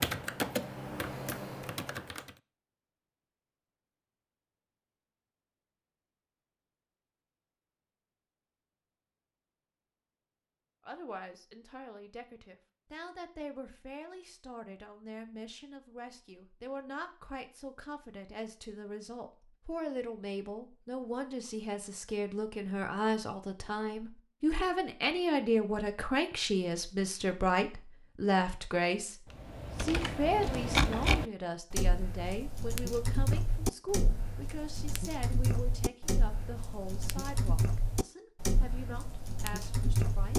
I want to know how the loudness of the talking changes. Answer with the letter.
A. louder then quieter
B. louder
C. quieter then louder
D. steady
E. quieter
A.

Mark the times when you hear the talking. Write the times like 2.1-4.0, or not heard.
10.8-40.3.